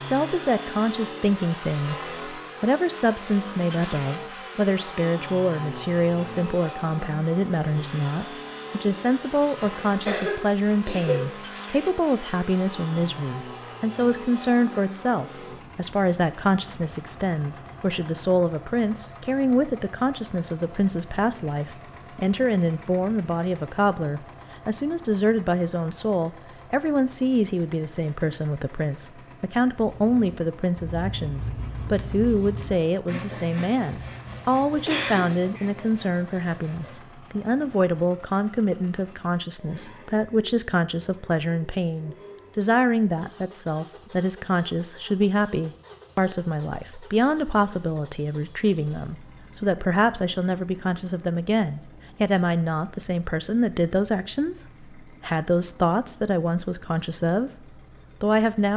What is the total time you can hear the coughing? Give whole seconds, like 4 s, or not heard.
2 s.